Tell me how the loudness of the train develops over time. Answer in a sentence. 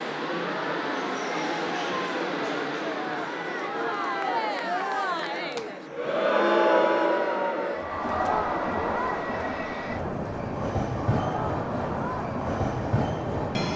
The loudness of the train goes down, then up.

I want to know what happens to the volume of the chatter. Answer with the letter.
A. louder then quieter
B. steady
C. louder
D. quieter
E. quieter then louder
A.